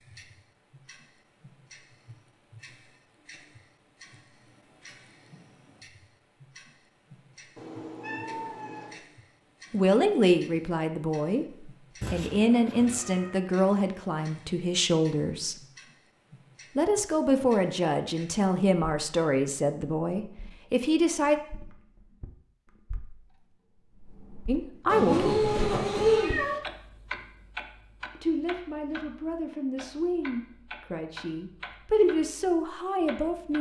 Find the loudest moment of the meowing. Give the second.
26 s.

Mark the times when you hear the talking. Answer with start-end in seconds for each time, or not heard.
9.7-15.6, 16.8-21.4, 24.4-25.6, 28.1-33.5.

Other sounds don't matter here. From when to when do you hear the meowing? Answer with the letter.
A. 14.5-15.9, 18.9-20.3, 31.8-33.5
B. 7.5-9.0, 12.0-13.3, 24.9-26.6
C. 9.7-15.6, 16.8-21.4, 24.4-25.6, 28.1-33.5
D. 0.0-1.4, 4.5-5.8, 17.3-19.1
B.